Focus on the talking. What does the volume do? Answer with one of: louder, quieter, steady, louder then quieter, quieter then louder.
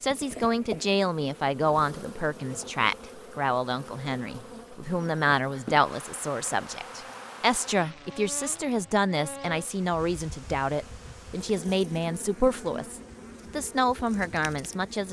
steady.